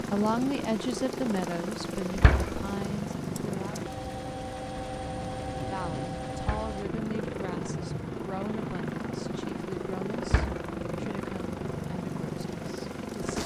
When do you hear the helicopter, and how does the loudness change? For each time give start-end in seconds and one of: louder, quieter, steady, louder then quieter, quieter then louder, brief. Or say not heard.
0.0-13.4 steady.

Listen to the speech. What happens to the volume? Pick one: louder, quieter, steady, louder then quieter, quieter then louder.
quieter.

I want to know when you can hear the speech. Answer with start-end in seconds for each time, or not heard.
0.0-3.9, 5.5-13.4.